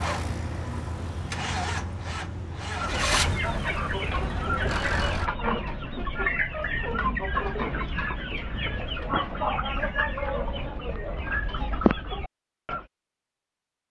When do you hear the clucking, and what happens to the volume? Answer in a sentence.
You can hear the clucking from 2.8 to 12.8 s, at a steady volume.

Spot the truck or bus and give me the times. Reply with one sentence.
The truck or bus can be heard from 0.0 to 5.3 s.